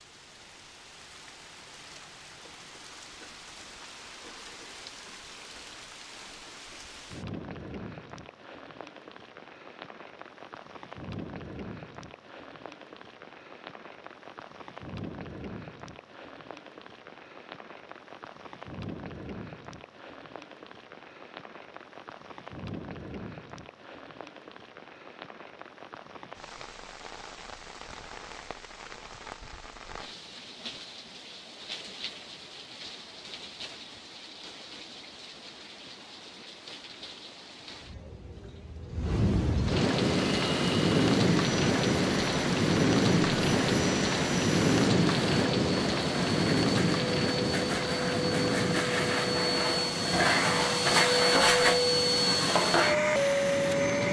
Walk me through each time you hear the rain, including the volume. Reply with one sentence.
You can hear the rain from 0.0 to 54.0 s, getting louder.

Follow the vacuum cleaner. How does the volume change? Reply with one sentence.
The loudness of the vacuum cleaner goes up.